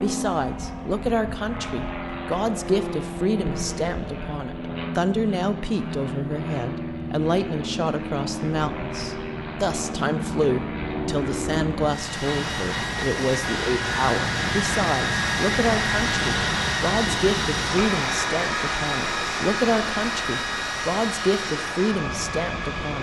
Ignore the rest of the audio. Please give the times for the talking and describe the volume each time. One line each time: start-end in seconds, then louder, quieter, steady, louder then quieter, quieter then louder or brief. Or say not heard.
0.0-22.9 steady.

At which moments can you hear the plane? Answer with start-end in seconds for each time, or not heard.
0.0-22.9.